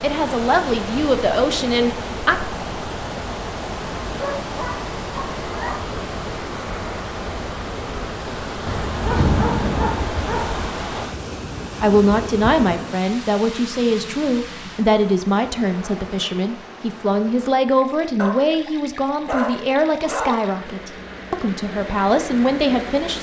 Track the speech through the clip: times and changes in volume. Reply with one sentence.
The speech can be heard briefly from 0.0 to 2.4 s; and from 11.8 to 23.1 s, at a steady volume.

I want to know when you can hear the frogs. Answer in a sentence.
The frogs can't be heard in this clip.